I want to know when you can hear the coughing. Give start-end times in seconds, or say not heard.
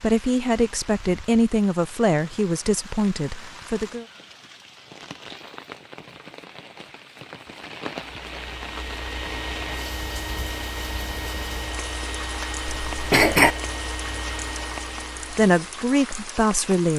12.7-13.6.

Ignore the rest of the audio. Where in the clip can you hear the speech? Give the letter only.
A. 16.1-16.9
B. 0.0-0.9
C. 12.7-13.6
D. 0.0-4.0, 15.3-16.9
D.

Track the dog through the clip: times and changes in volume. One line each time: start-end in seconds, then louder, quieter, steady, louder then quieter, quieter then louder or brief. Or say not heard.
not heard.